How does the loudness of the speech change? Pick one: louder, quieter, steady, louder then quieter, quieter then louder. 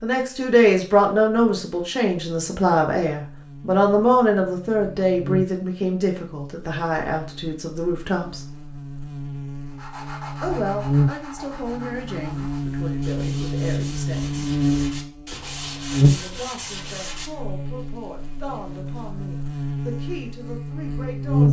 quieter.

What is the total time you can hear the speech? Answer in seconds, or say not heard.
18 s.